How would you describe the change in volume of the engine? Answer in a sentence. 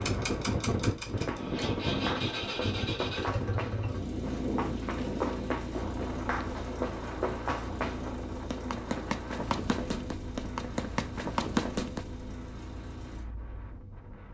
The loudness of the engine goes down.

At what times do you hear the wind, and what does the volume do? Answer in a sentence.
You can hear the wind from 0.0 to 14.3 s, getting quieter.